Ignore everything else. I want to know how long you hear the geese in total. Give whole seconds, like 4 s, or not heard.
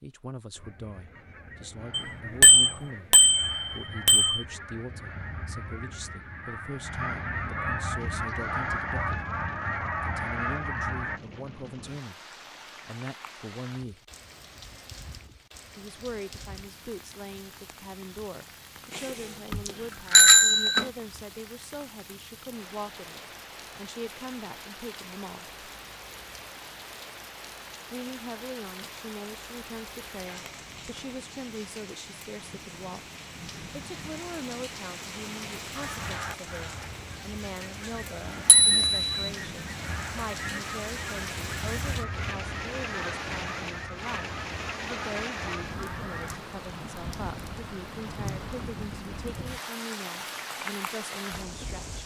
21 s.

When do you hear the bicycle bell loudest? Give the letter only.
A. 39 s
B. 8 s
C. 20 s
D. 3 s
C.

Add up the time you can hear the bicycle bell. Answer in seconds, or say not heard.
5 s.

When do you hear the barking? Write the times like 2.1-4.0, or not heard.
not heard.